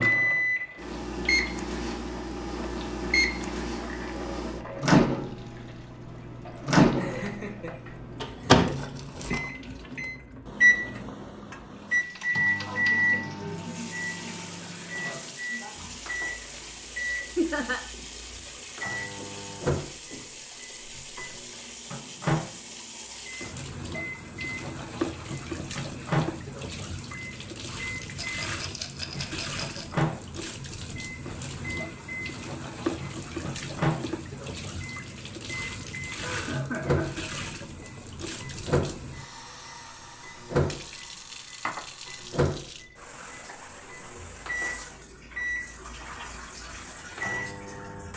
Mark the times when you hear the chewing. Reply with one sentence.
You can't hear the chewing here.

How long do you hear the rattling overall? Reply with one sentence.
The rattling can be heard for 3 seconds in total.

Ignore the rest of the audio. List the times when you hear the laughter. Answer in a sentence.
The laughter can be heard from 6.8 to 8.9 s, from 17.4 to 17.9 s and from 36.1 to 37.3 s.